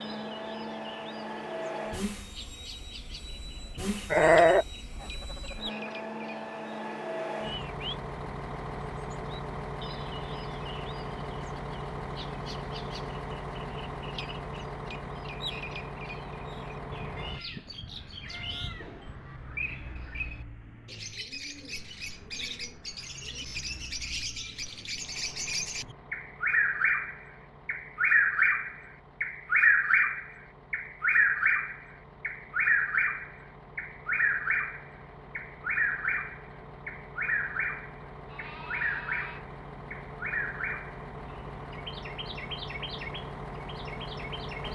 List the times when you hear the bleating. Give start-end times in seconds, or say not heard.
4.1-5.5, 17.1-19.0, 38.2-39.5.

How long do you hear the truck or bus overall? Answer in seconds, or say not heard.
45 s.